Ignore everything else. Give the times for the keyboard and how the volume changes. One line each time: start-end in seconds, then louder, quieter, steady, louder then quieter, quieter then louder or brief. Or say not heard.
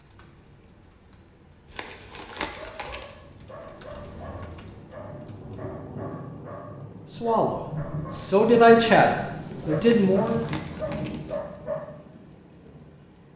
0.0-5.8 louder.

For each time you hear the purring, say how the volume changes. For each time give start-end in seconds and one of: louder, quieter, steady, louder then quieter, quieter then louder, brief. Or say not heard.
not heard.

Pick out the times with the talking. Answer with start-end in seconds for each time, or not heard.
7.2-10.4.